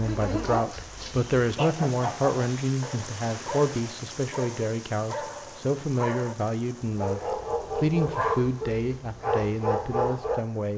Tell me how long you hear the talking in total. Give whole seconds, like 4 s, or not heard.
11 s.